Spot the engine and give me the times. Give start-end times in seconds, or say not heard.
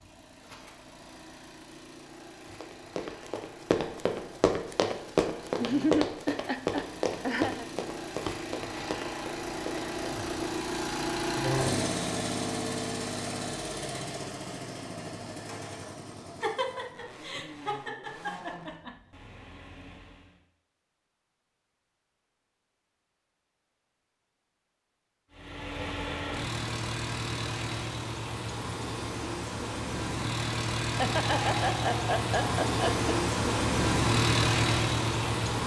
0.0-20.4, 25.3-35.6.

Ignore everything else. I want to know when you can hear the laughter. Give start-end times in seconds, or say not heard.
5.6-7.7, 16.4-18.9, 30.8-33.1.